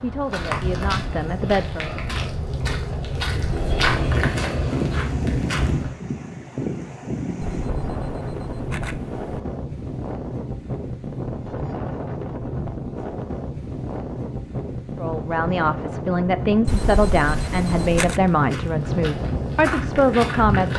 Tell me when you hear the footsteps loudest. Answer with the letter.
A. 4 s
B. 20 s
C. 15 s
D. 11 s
A.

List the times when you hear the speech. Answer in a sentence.
You can hear the speech from 0.0 to 1.9 s and from 14.9 to 20.7 s.